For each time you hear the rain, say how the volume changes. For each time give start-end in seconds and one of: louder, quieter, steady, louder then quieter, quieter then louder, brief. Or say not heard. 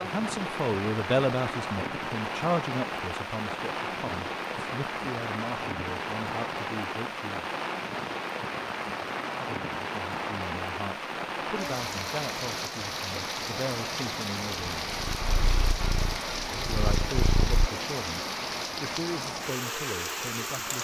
0.0-20.7 steady.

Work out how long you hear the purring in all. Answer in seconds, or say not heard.
3 s.